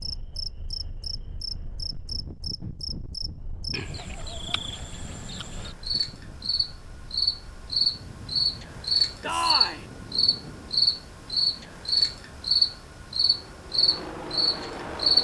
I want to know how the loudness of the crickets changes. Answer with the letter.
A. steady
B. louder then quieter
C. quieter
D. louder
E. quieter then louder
D.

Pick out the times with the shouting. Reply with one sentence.
The shouting can be heard from 9.2 to 9.8 s.